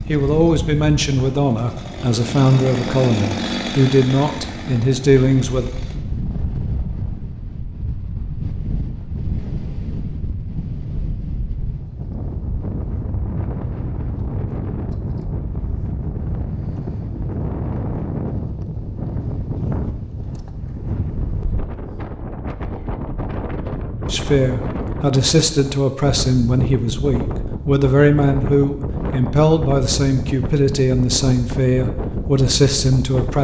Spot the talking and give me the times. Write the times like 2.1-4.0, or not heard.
0.1-5.7, 24.1-33.4.